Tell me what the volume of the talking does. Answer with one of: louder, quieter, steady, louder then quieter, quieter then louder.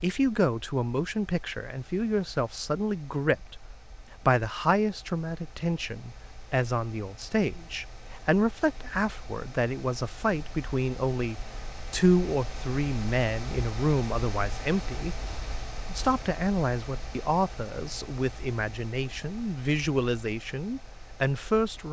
steady.